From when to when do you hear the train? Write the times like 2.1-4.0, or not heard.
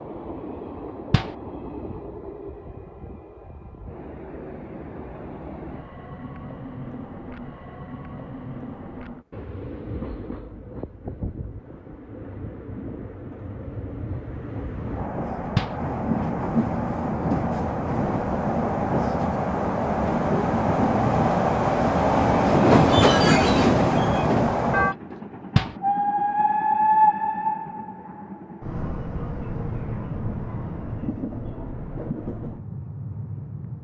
0.0-33.7.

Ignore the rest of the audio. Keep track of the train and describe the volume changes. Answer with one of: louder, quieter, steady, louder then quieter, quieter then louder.
louder then quieter.